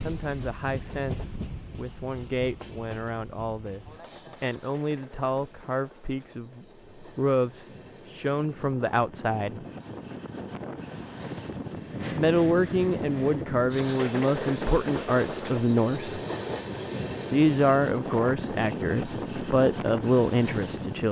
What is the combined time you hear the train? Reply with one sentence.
The train can be heard for 21 seconds in total.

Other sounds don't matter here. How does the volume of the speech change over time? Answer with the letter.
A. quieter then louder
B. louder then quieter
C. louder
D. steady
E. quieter
C.